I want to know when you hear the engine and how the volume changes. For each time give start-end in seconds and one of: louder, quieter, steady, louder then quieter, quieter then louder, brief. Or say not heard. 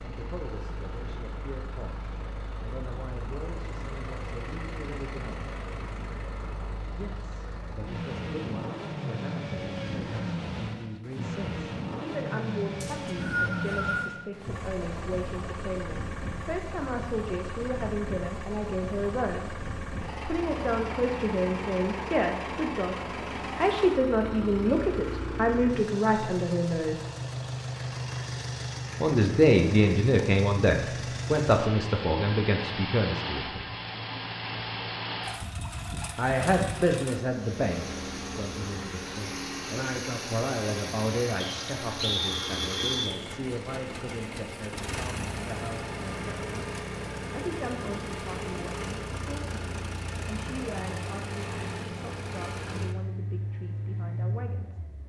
0.0-55.0 steady.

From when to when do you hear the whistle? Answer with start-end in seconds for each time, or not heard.
12.8-14.1, 41.4-43.2.